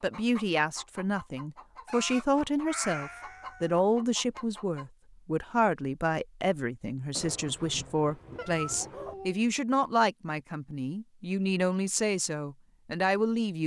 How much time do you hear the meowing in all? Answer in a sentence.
You can hear the meowing for 2 seconds altogether.